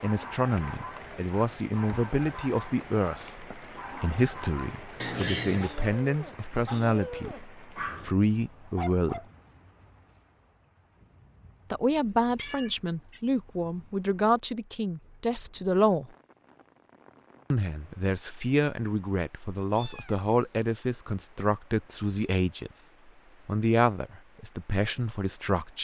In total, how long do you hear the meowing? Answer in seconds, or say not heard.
3 s.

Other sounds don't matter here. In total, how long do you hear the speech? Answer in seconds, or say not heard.
21 s.